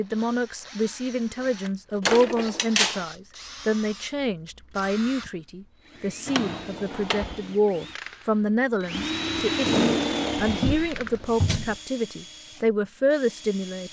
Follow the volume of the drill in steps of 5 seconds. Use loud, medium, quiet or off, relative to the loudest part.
quiet, loud, loud.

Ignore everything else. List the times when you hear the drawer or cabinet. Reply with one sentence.
You can hear the drawer or cabinet from 2.0 to 3.0 s, from 6.2 to 7.3 s and from 10.4 to 11.8 s.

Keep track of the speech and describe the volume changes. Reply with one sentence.
The loudness of the speech stays about the same.